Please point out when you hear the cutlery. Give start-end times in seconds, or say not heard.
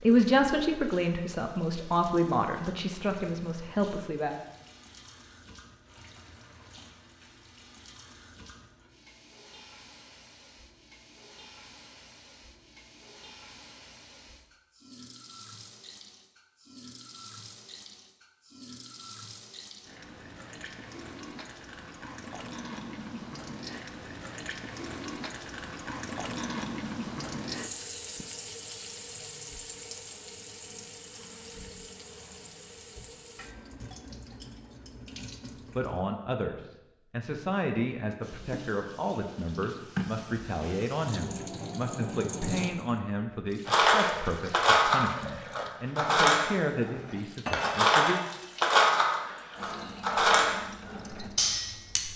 43.6-52.0.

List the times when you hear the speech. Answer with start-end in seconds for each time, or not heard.
0.0-4.4, 35.8-48.2.